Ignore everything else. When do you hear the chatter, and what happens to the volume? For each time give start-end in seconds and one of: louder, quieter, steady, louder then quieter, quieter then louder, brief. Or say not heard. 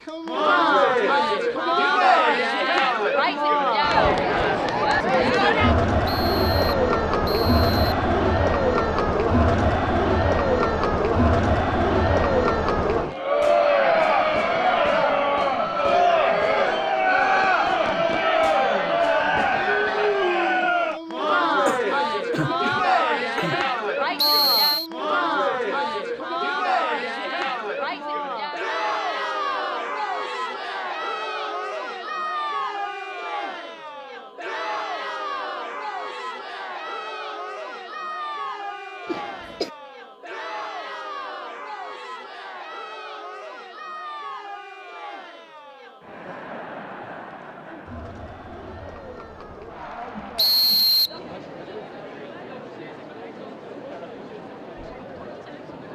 0.1-55.9 quieter.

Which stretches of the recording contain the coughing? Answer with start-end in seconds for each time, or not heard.
21.6-23.6, 39.0-39.7.